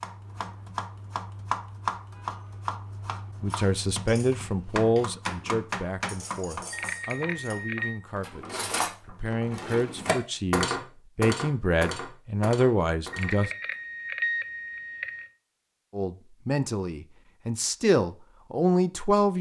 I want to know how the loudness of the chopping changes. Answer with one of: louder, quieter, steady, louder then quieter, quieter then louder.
quieter.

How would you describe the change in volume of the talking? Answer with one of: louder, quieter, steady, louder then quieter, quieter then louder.
quieter then louder.